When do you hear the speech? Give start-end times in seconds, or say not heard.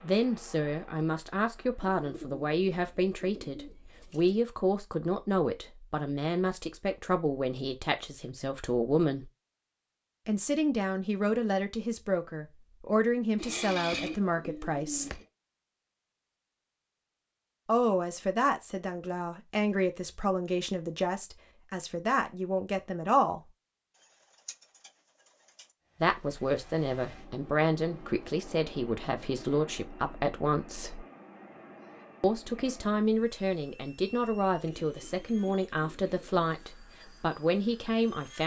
0.0-9.2, 10.2-15.2, 17.6-23.4, 26.0-31.0, 32.2-38.4.